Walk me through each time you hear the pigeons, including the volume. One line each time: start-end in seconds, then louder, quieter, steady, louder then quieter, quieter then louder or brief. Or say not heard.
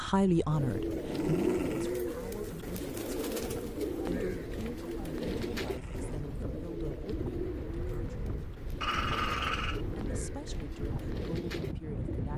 0.5-12.3 quieter.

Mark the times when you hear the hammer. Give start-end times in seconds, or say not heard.
not heard.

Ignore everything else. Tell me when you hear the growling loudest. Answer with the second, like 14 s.
9 s.